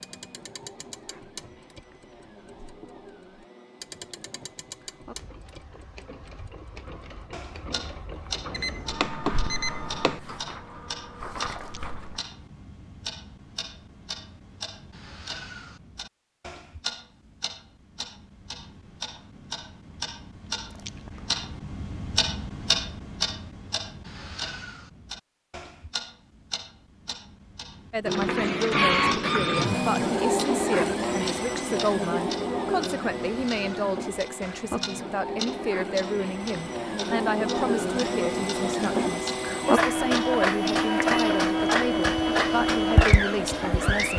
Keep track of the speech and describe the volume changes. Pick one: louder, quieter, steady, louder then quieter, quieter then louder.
steady.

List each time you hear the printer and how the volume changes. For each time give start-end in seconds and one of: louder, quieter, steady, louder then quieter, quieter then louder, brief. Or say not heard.
0.0-12.2 louder
28.1-44.1 quieter then louder.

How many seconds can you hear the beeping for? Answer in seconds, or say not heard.
2 s.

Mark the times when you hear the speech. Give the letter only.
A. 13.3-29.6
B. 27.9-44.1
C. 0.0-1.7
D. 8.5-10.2
B.